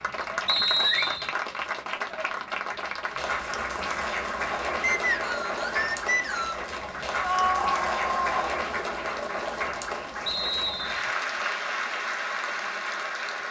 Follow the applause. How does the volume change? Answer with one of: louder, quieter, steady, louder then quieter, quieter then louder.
steady.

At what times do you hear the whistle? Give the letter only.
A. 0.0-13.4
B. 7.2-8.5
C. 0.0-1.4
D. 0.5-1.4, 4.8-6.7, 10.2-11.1
D.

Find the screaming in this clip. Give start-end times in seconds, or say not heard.
7.2-8.5.